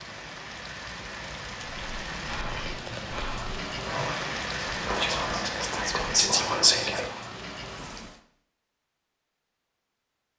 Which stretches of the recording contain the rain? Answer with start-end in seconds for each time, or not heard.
0.0-8.2.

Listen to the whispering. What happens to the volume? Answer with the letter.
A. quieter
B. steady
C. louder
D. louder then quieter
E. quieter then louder
C.